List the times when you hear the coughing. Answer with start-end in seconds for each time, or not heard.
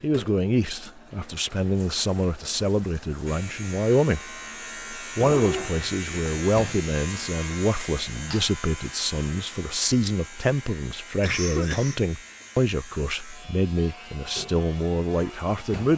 11.2-12.0.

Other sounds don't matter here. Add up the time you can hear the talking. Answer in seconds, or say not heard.
15 s.